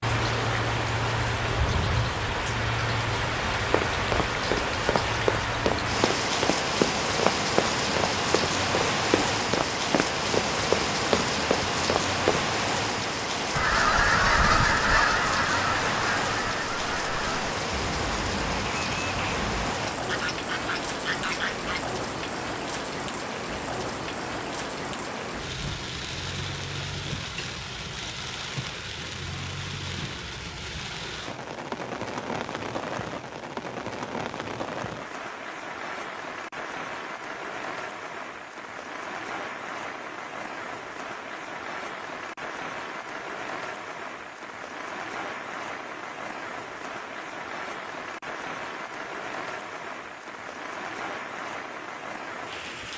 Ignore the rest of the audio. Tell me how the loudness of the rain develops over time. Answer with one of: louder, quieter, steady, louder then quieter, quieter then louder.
quieter.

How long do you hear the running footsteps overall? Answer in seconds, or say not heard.
9 s.